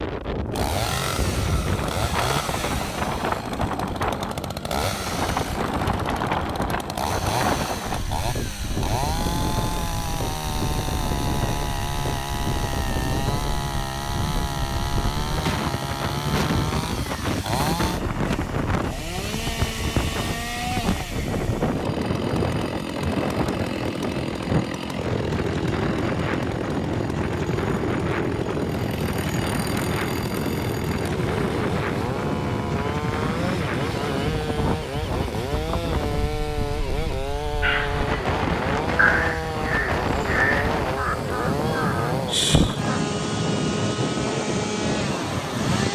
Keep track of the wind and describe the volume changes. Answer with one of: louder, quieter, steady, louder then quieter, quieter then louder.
steady.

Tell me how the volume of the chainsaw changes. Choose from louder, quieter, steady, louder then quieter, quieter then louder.
steady.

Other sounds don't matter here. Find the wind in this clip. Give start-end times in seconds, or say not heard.
0.0-45.8.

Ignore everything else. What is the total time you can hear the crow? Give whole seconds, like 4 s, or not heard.
5 s.